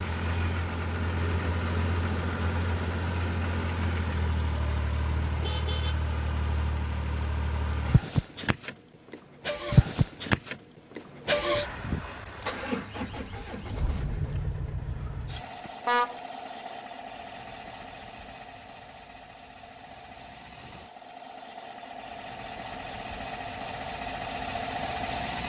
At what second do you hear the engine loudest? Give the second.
10 s.